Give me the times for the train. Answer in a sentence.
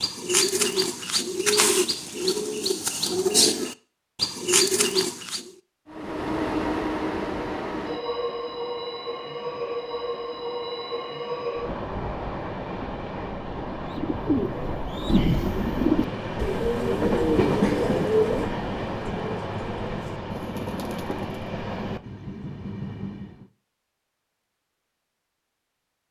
You can hear the train from 5.8 to 23.4 s.